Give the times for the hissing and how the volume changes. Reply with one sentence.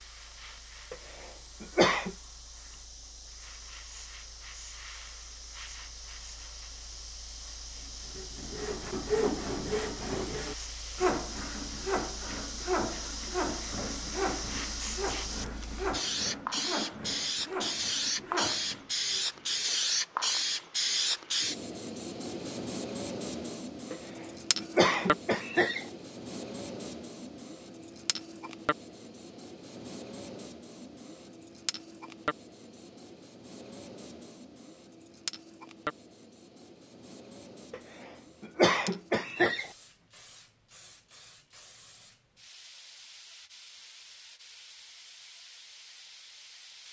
The hissing can be heard from 0.0 to 46.8 s, getting louder then quieter.